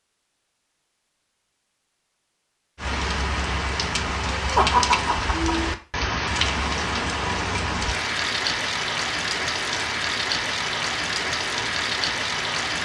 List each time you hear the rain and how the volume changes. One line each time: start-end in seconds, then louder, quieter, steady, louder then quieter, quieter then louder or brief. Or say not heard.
2.8-12.8 steady.